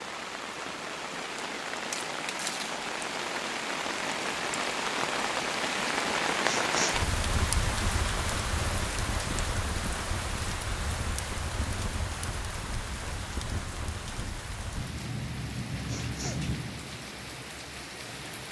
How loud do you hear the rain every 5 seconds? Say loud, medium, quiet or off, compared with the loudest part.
loud, loud, medium, medium.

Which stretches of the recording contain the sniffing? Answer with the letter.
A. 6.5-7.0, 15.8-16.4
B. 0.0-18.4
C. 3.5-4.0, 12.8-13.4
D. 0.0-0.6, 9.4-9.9
A.